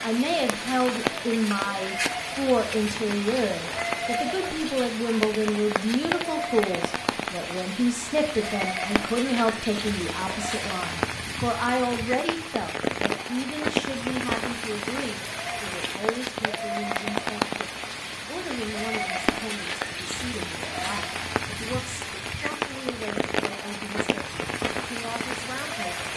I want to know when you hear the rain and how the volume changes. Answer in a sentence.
You can hear the rain from 0.0 to 26.1 s, at a steady volume.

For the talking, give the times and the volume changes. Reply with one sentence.
You can hear the talking from 0.0 to 26.1 s, getting quieter.